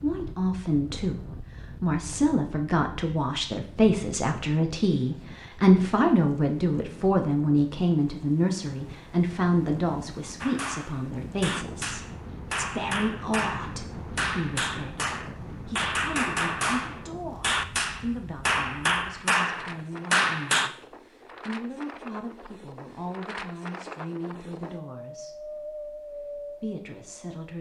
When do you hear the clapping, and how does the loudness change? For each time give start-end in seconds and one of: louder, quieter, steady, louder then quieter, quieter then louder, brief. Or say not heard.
10.4-20.7 louder.